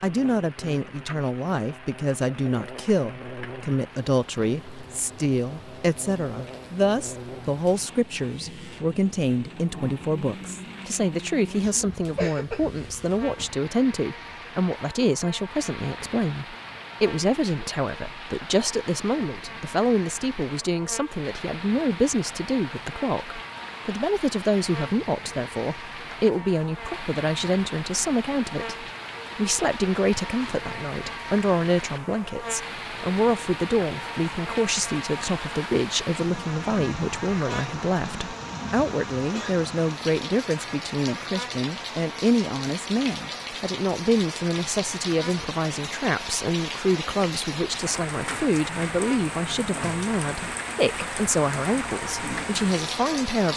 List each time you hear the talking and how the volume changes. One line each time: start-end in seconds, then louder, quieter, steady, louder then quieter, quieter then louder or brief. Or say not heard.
0.0-53.5 steady.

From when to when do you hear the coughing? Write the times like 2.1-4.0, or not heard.
11.6-12.8.